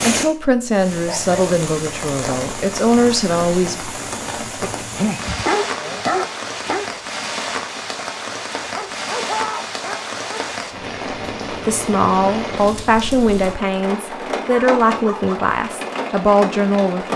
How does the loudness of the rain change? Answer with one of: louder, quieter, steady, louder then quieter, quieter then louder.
steady.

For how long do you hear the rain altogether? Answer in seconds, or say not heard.
17 s.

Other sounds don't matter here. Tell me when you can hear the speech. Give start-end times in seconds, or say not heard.
0.0-3.8, 11.5-17.1.